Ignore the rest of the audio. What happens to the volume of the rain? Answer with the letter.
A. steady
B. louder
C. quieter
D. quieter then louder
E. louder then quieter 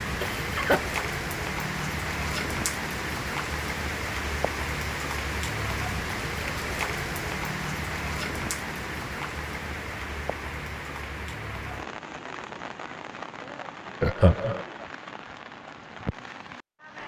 C.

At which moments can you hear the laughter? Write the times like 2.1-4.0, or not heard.
0.2-0.8, 14.0-14.6.